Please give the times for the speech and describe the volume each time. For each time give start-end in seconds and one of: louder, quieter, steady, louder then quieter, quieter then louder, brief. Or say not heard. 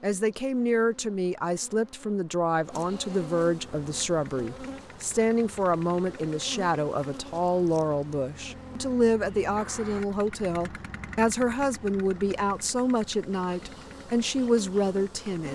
0.0-15.4 steady.